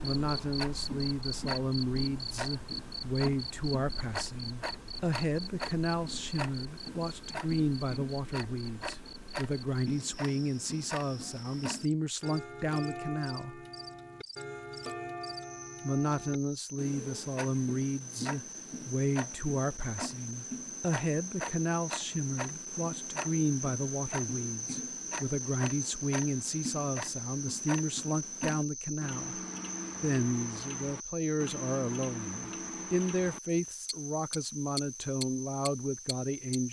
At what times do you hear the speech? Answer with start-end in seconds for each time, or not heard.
0.0-13.6, 15.8-29.4, 30.0-36.6.